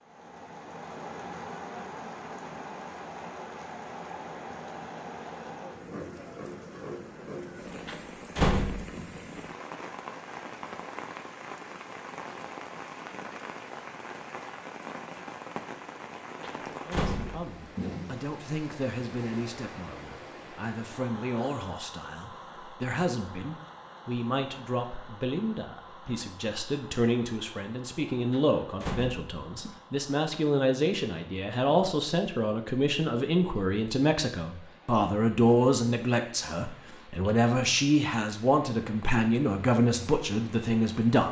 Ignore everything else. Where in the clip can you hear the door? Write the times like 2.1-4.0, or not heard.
7.8-8.8, 16.4-17.6, 28.3-29.8.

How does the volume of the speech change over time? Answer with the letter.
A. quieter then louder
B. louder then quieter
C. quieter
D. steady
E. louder
E.